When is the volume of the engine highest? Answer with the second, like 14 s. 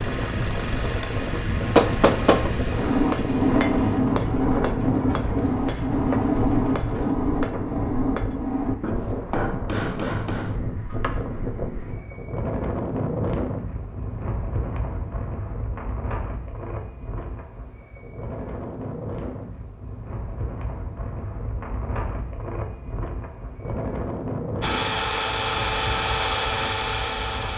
26 s.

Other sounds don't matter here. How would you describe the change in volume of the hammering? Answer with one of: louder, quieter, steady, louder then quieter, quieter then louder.
quieter.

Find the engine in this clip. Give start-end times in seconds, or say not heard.
0.0-7.2, 24.6-27.5.